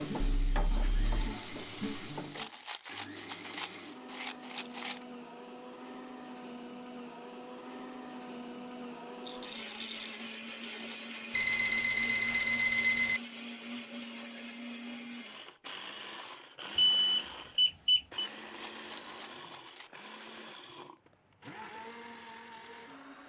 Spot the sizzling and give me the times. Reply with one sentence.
The sizzling can be heard from 0.0 to 2.5 s.